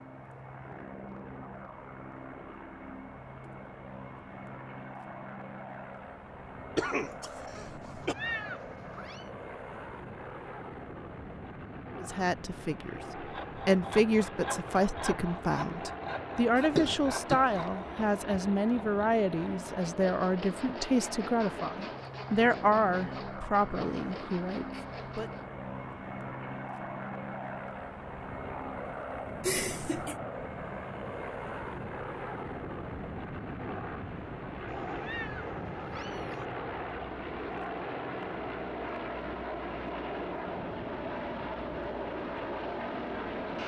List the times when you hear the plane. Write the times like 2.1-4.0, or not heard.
0.0-43.6.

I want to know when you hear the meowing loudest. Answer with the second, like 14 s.
8 s.